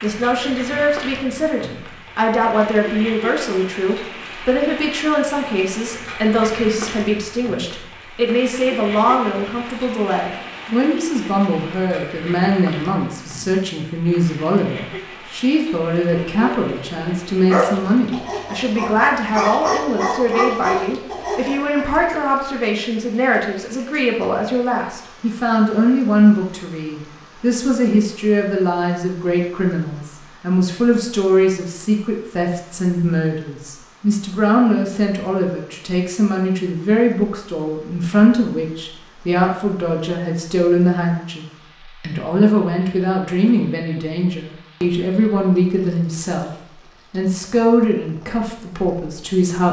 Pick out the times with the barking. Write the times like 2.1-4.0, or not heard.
16.3-21.9.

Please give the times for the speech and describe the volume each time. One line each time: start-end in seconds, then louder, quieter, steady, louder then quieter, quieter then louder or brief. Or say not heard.
0.0-46.5 steady
47.1-49.6 brief.